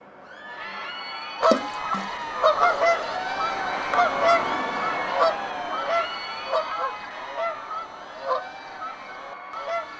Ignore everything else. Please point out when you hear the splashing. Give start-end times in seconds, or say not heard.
1.4-2.1.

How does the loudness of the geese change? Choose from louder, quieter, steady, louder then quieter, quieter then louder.
quieter.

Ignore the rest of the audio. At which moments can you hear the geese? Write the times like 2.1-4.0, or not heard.
1.4-9.9.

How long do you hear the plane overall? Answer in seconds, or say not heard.
10 s.